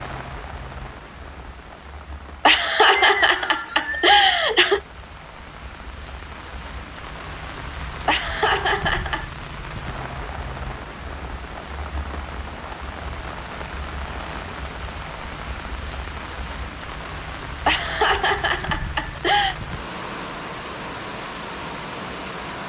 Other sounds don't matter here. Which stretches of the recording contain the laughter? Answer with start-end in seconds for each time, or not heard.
2.5-4.8, 8.1-9.3, 17.6-19.6.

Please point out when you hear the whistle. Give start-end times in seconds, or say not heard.
3.0-4.2.